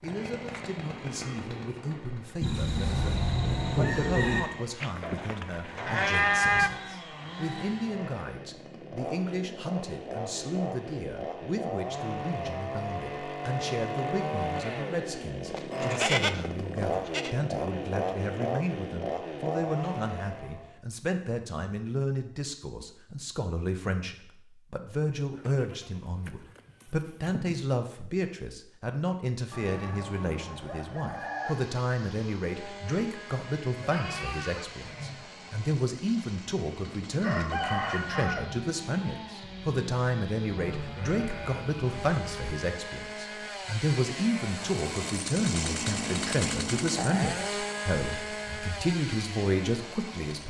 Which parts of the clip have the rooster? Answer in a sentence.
You can hear the rooster from 2.4 to 4.4 s, from 29.5 to 31.6 s and from 37.0 to 38.7 s.